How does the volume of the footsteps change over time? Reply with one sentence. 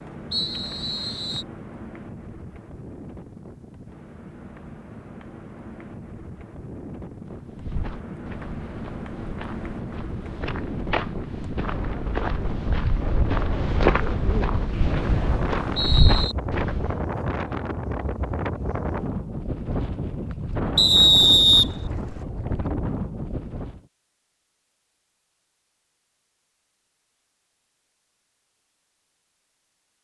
The volume of the footsteps goes up.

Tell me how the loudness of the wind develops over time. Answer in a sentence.
The loudness of the wind goes up.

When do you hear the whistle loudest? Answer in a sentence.
The volume of the whistle peaks at 21 seconds.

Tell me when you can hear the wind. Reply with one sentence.
The wind can be heard from 0.0 to 23.8 s.